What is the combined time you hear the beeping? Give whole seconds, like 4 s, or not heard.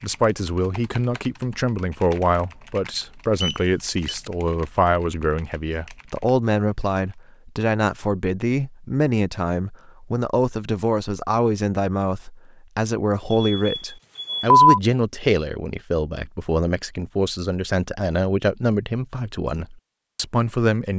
2 s.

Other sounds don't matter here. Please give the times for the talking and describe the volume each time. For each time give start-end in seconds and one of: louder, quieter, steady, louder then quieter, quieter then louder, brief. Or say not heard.
0.0-20.9 steady.